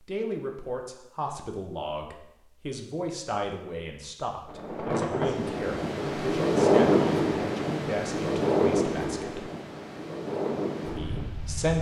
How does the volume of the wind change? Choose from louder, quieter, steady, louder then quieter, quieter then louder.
louder then quieter.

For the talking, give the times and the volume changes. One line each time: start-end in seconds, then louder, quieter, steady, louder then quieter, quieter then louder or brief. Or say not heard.
0.0-9.5 steady
10.9-11.7 brief.